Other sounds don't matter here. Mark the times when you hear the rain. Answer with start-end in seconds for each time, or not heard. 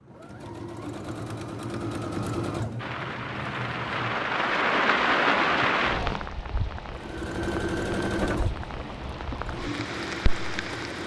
2.8-11.0.